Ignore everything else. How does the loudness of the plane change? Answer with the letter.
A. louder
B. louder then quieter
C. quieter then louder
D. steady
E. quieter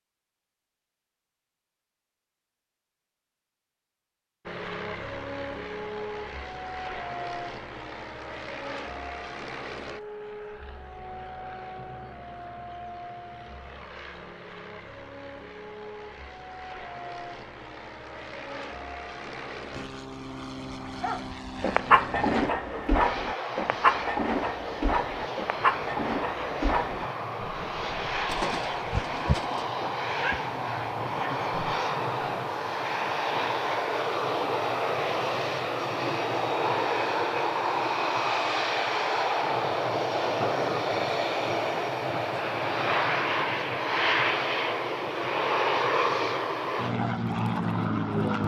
A.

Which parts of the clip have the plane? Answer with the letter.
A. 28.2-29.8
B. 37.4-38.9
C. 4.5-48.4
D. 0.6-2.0
C.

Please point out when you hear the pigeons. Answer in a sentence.
The pigeons can be heard from 28.2 to 29.8 s.